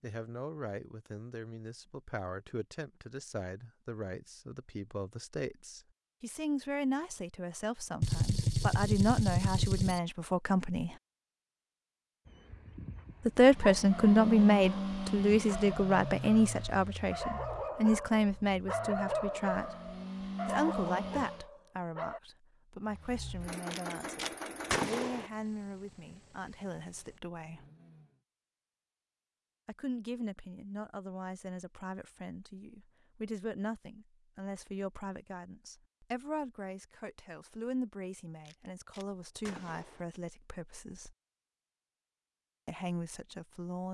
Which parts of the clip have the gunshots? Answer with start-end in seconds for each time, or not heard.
8.0-10.0, 23.7-25.3, 38.5-40.0.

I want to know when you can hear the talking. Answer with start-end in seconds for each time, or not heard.
0.0-10.9, 13.2-19.8, 20.4-27.6, 29.6-41.1, 42.6-43.8.